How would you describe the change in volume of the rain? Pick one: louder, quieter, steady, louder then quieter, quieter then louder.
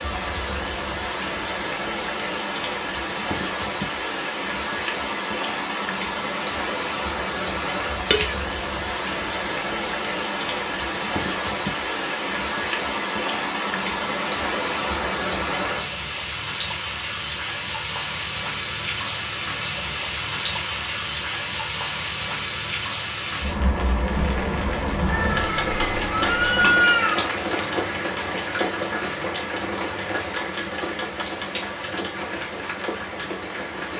steady.